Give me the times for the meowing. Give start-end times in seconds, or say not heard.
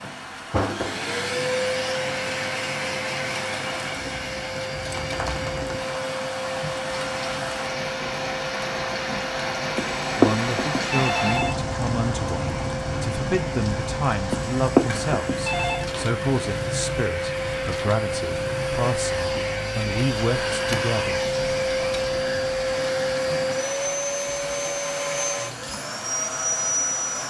not heard.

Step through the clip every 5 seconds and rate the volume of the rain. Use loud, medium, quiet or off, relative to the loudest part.
medium, loud, loud, medium, medium, medium.